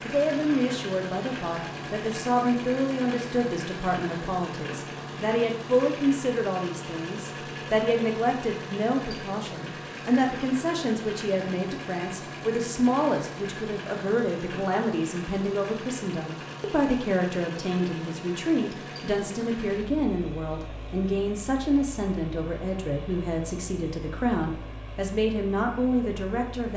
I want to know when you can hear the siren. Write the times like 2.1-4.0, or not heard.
not heard.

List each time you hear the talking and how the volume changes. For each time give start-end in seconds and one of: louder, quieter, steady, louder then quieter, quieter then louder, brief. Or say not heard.
0.1-26.7 steady.